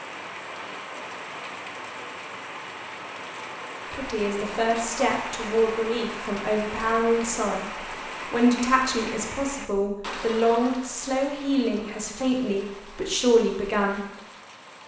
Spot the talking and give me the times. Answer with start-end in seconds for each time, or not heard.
3.9-14.0.